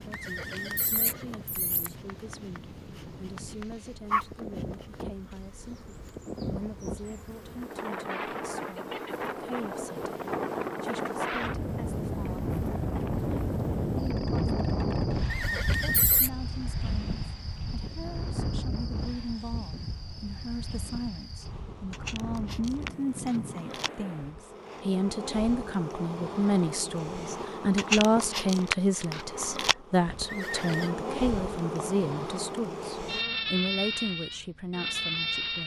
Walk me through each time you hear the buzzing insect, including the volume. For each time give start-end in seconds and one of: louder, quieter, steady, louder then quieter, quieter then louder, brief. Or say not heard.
0.0-35.6 louder.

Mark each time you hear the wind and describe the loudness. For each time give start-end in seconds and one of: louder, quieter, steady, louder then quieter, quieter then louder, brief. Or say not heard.
0.0-24.4 louder then quieter.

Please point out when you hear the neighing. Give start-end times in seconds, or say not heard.
0.1-1.9, 15.3-16.3, 30.2-30.9.